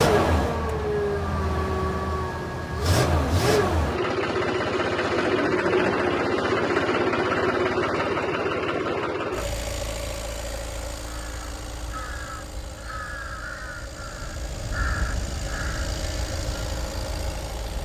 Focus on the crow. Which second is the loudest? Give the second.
15 s.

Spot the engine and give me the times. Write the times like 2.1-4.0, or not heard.
0.0-17.7.